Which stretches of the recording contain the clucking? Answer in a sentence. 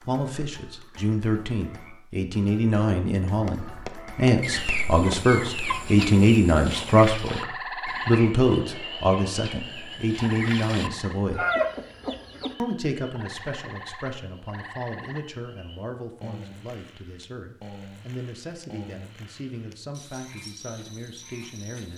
You can hear the clucking from 4.4 to 12.6 s.